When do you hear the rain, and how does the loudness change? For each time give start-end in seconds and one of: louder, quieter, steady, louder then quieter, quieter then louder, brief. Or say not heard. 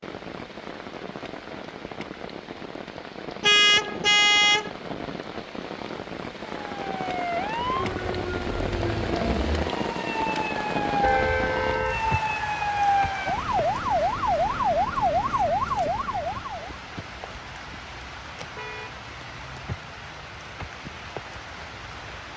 0.0-22.3 louder then quieter.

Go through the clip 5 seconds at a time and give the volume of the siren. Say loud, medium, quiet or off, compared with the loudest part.
off, medium, loud, loud, off.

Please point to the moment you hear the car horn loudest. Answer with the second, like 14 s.
4 s.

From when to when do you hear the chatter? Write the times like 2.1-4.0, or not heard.
not heard.